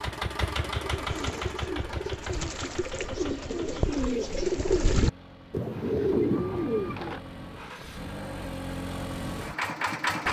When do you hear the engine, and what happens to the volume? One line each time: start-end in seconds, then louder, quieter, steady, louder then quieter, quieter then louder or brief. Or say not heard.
0.0-10.2 quieter then louder.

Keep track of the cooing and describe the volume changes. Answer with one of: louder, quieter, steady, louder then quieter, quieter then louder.
louder.